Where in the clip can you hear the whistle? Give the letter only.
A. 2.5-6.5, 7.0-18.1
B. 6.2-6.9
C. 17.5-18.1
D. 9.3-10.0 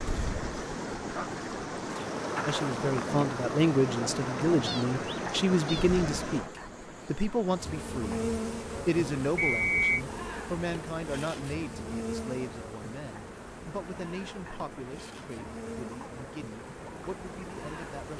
D.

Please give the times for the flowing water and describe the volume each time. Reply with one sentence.
You can hear the flowing water from 0.0 to 18.1 s, getting quieter.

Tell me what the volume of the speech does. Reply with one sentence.
The volume of the speech goes down.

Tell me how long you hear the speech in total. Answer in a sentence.
The speech can be heard for 15 seconds in total.